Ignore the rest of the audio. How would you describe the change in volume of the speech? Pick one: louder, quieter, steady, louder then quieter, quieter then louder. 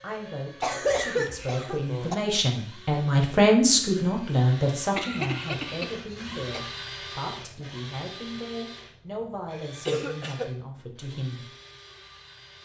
louder then quieter.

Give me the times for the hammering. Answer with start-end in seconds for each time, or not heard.
not heard.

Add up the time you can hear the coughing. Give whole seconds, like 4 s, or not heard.
4 s.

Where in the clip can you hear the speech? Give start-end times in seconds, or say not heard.
0.0-11.5.